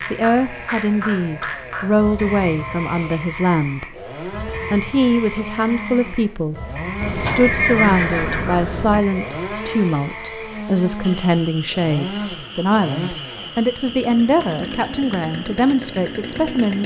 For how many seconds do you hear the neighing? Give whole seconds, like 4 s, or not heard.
2 s.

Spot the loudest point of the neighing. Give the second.
8 s.